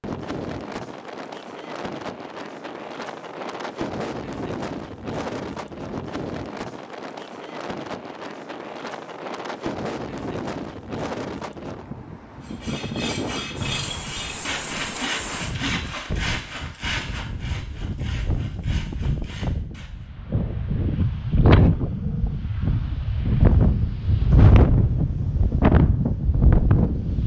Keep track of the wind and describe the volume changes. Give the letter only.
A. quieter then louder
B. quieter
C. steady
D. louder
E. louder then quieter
D.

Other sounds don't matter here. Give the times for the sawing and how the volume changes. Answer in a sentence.
The sawing can be heard from 12.4 to 20.1 s, getting quieter.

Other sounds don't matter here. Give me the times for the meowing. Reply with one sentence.
The meowing can't be heard in this clip.